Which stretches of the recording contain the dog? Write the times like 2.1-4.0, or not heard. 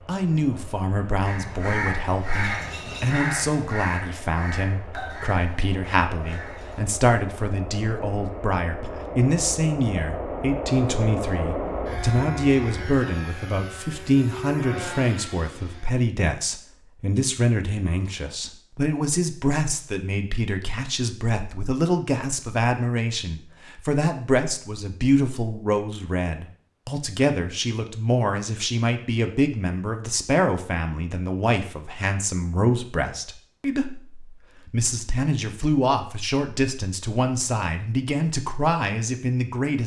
not heard.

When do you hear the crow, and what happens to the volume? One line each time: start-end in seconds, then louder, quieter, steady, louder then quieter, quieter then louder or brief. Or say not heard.
1.2-6.8 quieter.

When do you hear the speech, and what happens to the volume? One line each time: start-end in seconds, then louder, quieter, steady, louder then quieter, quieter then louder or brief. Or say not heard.
0.0-39.8 steady.